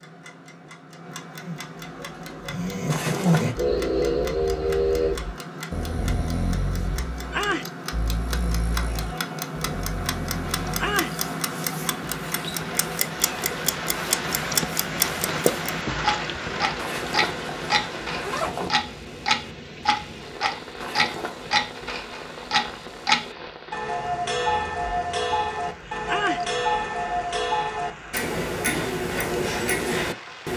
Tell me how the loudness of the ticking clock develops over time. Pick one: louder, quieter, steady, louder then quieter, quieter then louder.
louder.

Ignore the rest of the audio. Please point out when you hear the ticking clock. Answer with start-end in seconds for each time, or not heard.
0.0-30.5.